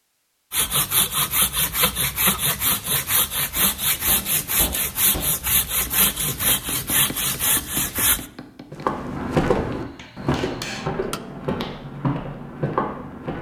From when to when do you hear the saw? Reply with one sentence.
The saw can be heard from 0.5 to 8.2 s.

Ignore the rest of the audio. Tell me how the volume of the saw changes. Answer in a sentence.
The volume of the saw stays about the same.